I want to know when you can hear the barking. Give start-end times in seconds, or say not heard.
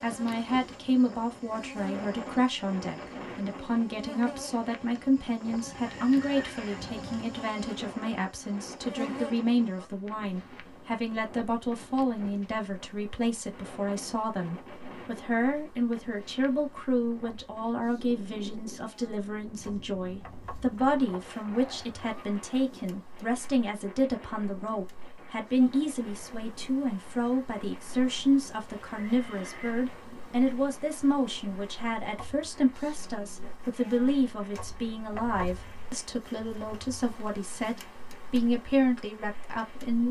not heard.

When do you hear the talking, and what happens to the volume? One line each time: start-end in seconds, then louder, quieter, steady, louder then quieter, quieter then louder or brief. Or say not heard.
0.0-40.0 steady.